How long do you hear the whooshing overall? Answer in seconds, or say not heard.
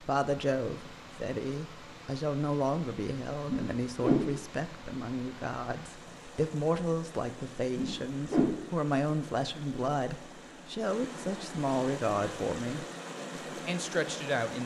2 s.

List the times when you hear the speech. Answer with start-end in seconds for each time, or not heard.
0.0-12.8, 13.6-14.6.